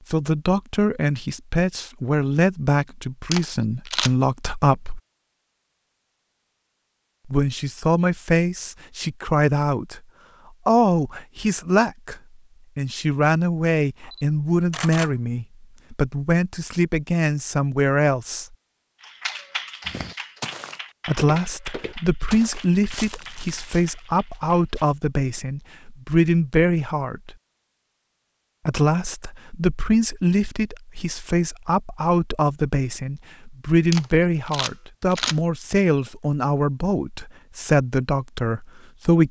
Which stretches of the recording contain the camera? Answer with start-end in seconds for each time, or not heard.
3.3-4.1, 13.9-15.2, 33.9-35.4.